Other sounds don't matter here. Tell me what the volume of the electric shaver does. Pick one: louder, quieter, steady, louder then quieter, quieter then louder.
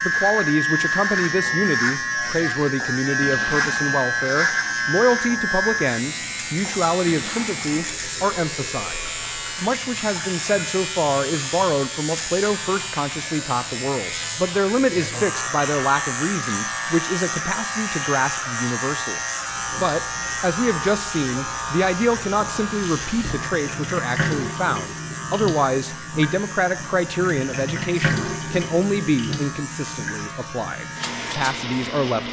quieter.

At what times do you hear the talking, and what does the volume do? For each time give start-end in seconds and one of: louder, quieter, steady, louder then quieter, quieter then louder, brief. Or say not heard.
0.0-32.2 steady.